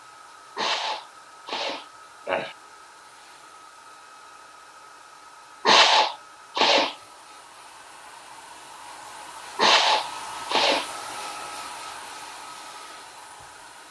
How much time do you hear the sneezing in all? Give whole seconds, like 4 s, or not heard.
5 s.